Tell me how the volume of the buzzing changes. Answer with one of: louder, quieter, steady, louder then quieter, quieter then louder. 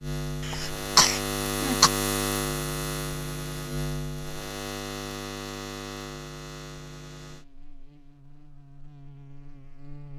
quieter.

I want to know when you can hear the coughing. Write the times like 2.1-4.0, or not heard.
0.4-1.9.